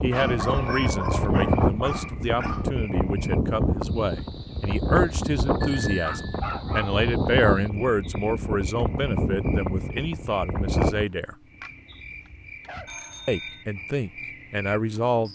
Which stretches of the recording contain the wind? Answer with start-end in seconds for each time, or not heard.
0.0-11.1.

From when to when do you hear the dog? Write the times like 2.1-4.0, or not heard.
0.1-2.7, 6.0-7.0, 11.6-12.9.